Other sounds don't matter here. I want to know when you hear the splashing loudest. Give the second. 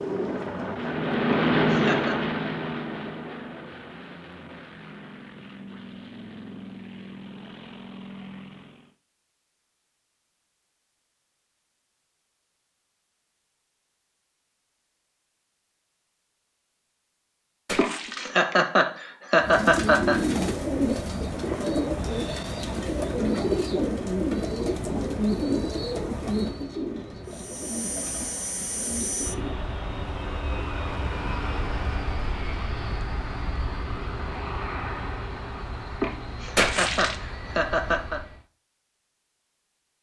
37 s.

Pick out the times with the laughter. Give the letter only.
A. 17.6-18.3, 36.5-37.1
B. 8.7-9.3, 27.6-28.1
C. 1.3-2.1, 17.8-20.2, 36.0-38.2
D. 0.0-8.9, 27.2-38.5
C.